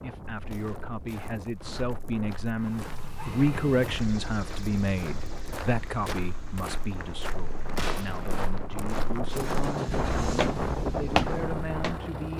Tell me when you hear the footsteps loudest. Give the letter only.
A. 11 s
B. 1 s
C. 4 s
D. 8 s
A.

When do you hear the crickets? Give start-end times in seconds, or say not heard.
not heard.